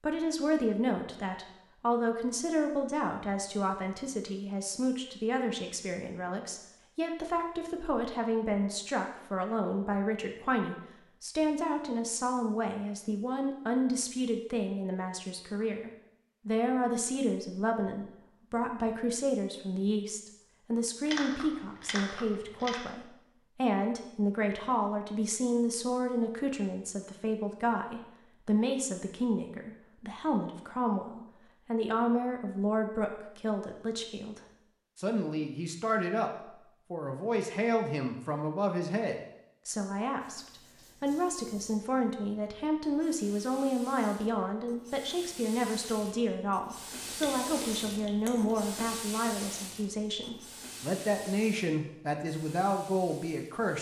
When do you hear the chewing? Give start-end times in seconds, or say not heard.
21.1-22.8, 47.0-48.5.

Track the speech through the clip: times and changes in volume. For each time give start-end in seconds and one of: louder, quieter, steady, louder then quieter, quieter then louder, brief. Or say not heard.
0.0-53.7 steady.